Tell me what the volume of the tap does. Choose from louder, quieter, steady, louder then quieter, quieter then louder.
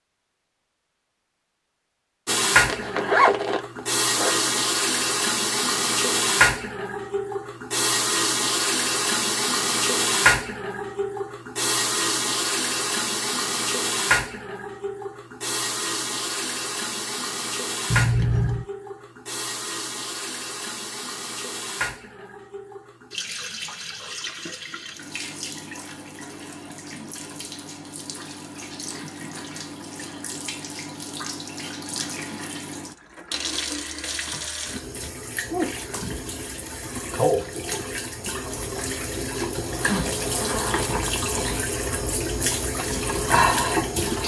quieter then louder.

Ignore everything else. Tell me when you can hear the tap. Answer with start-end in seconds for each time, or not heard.
2.2-44.2.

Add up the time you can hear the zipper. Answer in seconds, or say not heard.
5 s.